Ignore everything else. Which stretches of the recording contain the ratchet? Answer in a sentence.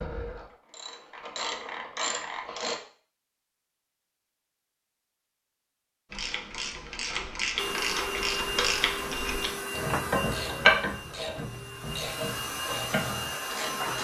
The ratchet can be heard from 0.0 to 2.8 s and from 6.1 to 14.0 s.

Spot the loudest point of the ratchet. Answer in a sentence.
The loudest moment of the ratchet is at 11 seconds.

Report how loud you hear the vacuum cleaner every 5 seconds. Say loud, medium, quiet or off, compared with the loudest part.
off, loud, loud.